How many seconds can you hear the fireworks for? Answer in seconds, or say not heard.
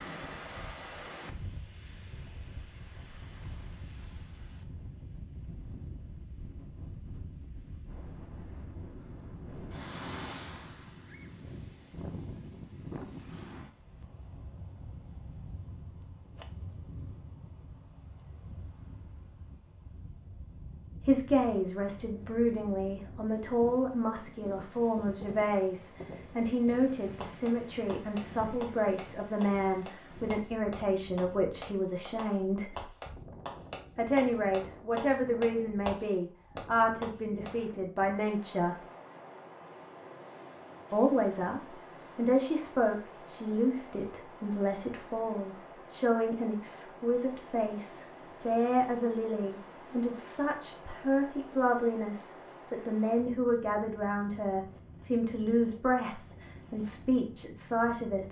10 s.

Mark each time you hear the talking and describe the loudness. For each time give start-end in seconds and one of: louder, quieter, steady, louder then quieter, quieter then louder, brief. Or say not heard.
20.9-32.9 steady
34.0-38.8 steady
40.9-58.2 steady.